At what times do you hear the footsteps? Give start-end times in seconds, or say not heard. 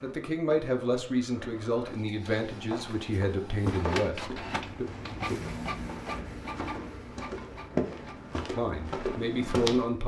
2.5-9.9.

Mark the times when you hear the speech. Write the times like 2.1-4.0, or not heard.
0.0-4.8, 8.6-10.0.